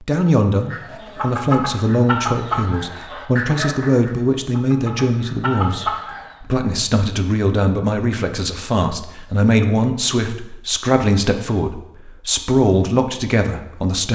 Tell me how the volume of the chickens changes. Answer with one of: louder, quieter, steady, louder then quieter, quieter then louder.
quieter then louder.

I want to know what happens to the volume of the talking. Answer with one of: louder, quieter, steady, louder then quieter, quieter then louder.
steady.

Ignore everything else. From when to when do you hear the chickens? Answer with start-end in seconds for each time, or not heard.
0.7-6.3.